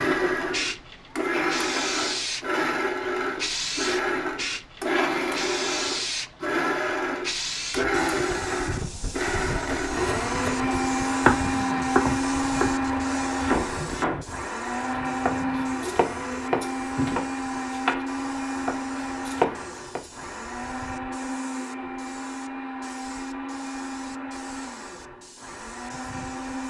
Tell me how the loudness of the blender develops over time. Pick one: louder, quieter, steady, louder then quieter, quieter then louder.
quieter.